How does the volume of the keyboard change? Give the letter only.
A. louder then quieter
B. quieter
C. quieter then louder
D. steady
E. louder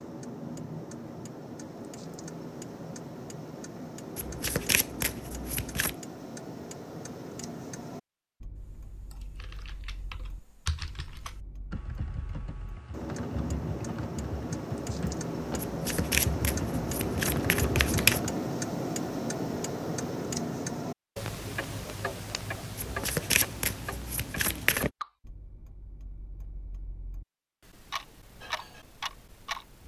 E.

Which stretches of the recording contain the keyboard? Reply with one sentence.
The keyboard can be heard from 8.6 to 18.4 s.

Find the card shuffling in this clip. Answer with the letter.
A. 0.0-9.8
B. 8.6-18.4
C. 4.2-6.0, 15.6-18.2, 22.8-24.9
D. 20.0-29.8
C.